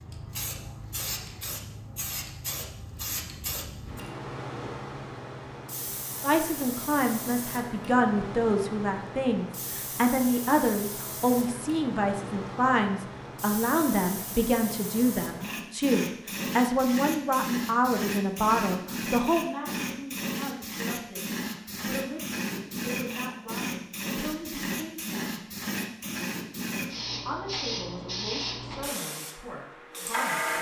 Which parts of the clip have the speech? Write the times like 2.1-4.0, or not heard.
6.2-25.4, 27.2-30.5.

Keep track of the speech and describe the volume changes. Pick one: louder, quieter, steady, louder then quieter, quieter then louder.
quieter.